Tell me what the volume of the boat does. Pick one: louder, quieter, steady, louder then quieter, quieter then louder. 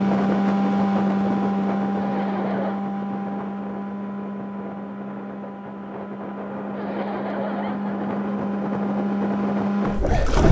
quieter then louder.